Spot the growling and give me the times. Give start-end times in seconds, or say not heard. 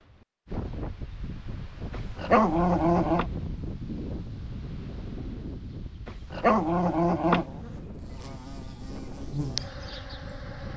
1.9-3.3, 6.0-7.5.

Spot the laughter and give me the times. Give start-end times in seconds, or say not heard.
not heard.